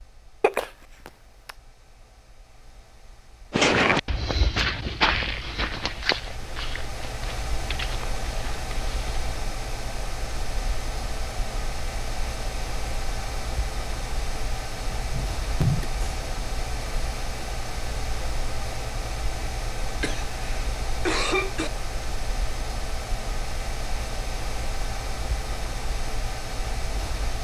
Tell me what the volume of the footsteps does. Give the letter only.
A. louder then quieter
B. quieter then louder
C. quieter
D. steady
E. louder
C.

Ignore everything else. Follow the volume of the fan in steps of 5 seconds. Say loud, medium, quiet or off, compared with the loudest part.
quiet, loud, loud, loud, loud, loud.